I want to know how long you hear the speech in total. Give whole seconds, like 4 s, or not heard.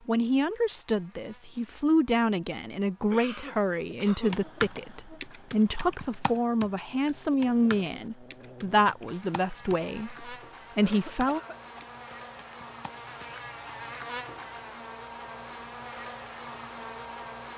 11 s.